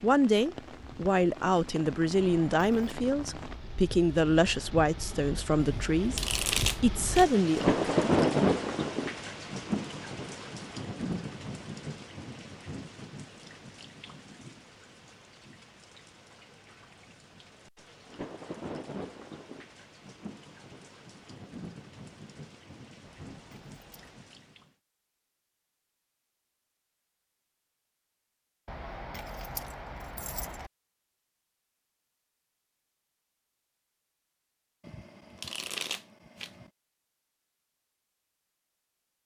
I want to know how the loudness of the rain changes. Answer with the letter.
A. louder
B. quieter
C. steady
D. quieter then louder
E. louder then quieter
E.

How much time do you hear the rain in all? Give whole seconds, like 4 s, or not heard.
25 s.